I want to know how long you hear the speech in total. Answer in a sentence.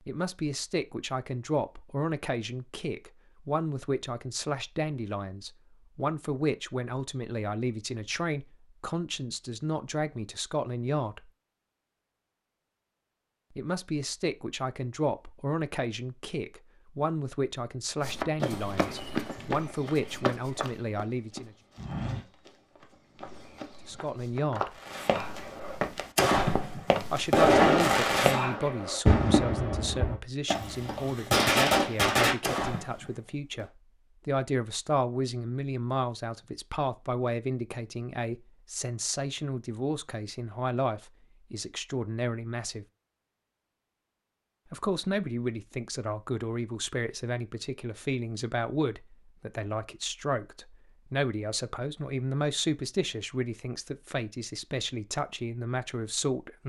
You can hear the speech for 48 seconds altogether.